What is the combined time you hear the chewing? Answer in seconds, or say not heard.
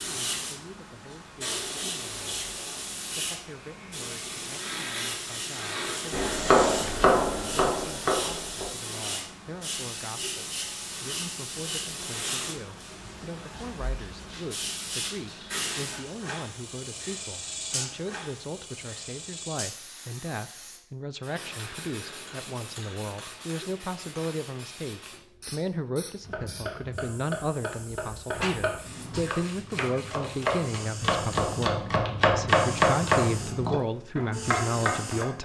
not heard.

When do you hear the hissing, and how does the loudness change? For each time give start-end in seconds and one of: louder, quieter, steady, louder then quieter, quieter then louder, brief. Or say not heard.
0.0-35.4 quieter.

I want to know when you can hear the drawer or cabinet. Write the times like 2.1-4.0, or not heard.
28.3-29.3.